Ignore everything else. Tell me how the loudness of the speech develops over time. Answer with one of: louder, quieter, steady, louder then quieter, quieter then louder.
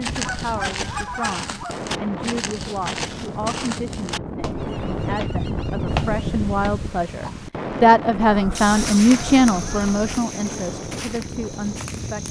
louder then quieter.